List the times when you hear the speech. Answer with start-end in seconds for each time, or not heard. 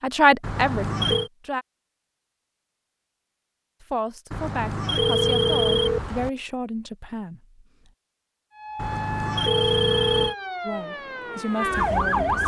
0.0-1.6, 3.8-7.9, 10.7-12.4.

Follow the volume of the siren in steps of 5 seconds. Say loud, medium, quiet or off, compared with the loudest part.
off, medium, loud.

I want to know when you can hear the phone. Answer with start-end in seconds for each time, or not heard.
0.4-1.3, 4.3-6.3, 8.8-10.3.